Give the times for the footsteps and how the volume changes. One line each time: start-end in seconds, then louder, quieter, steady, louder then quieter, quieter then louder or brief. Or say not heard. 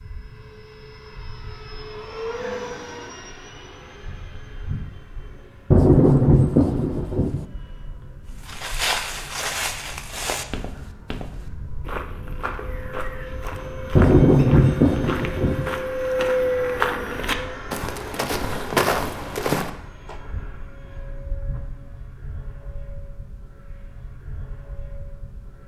8.4-20.1 quieter then louder.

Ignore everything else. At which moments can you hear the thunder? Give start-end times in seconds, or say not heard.
5.7-7.5, 13.9-15.7.